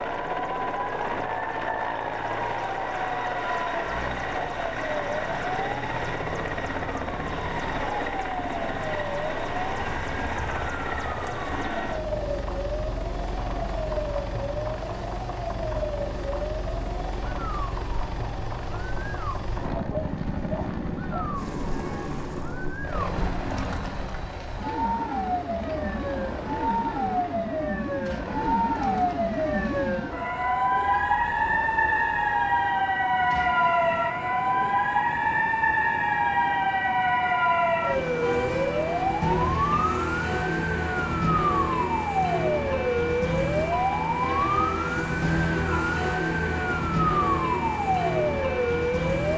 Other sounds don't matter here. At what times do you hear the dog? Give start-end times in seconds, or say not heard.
19.8-21.2.